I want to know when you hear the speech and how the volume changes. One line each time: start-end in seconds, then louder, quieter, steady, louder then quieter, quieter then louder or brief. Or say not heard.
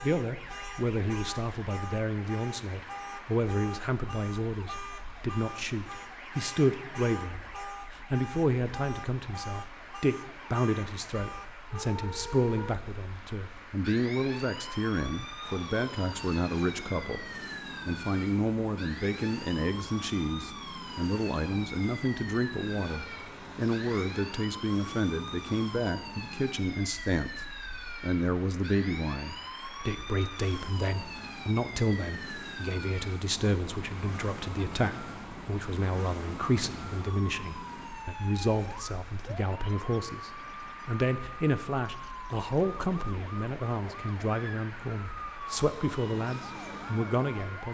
0.0-47.7 steady.